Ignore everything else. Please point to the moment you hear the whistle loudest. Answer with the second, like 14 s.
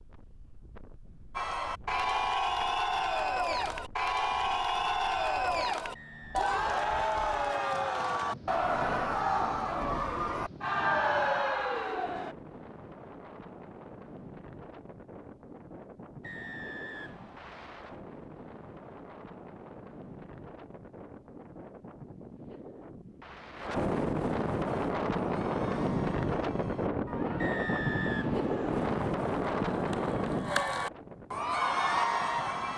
28 s.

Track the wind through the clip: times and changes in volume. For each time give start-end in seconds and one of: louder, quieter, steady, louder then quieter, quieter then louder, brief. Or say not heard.
0.0-32.7 louder.